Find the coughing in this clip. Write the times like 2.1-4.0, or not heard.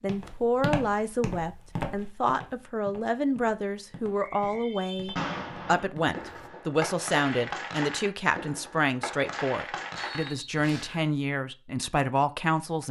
not heard.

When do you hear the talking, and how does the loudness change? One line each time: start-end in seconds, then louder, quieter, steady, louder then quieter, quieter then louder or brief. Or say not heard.
0.0-12.8 steady.